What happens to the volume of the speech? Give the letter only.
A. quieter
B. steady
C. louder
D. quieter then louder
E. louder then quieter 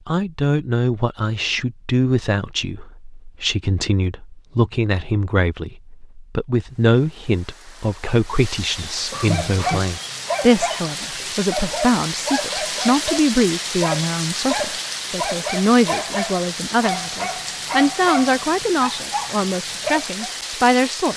B.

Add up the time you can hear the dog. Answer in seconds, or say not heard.
11 s.